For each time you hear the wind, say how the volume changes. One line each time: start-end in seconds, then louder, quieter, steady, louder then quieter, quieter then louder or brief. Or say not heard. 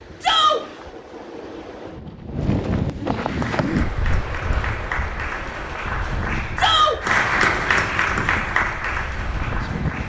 0.0-10.0 louder then quieter.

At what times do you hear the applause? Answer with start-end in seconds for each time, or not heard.
3.2-10.0.